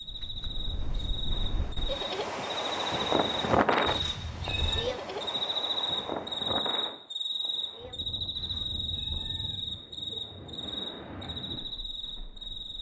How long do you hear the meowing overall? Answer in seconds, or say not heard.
2 s.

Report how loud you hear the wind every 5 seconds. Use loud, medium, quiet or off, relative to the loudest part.
loud, medium, quiet.